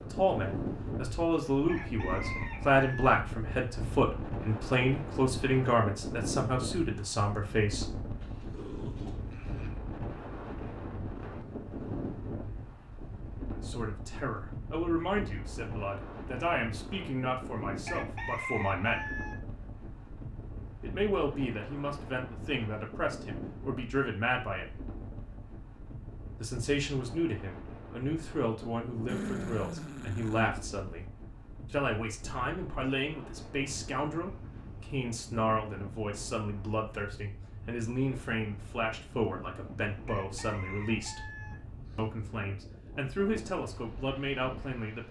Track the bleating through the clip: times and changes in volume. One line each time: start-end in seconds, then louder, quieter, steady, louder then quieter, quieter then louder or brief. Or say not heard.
not heard.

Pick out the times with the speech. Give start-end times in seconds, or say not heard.
0.0-8.0, 13.6-19.1, 20.8-24.8, 26.4-31.1, 31.7-41.2, 42.0-45.0.